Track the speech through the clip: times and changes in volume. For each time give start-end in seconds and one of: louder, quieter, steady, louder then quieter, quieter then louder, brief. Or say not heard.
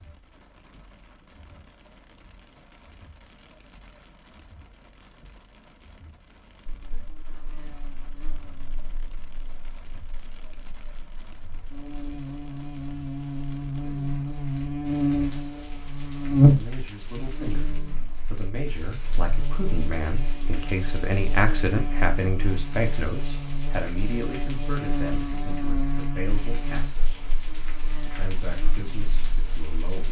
16.1-27.1 louder then quieter
28.1-30.0 brief.